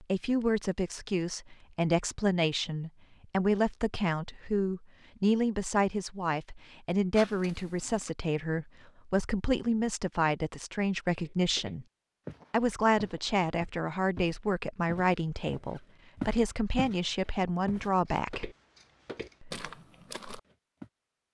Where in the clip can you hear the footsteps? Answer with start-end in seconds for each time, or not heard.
11.2-17.0, 17.6-20.9.